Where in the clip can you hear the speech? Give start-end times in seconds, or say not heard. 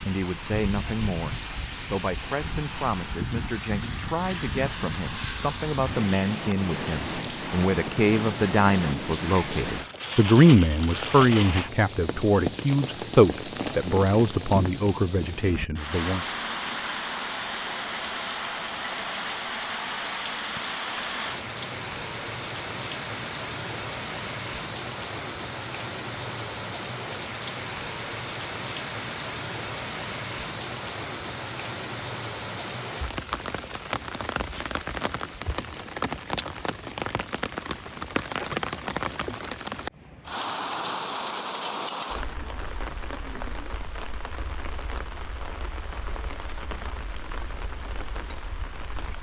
0.0-16.4.